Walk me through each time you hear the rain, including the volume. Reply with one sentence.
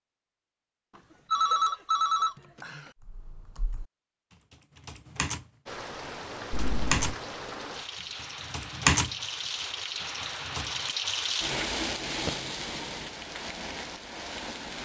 You can hear the rain from 5.7 to 14.8 s, getting louder then quieter.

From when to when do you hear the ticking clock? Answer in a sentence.
You can't hear the ticking clock here.